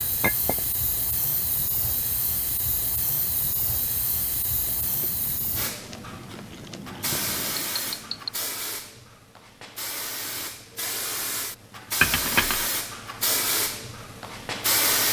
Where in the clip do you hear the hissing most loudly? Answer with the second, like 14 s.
15 s.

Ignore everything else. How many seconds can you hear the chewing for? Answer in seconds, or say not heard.
3 s.